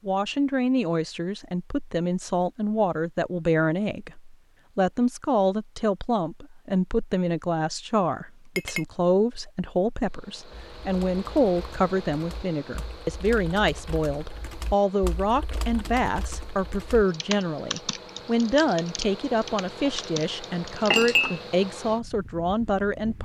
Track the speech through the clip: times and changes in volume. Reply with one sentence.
You can hear the speech from 0.1 to 23.2 s, at a steady volume.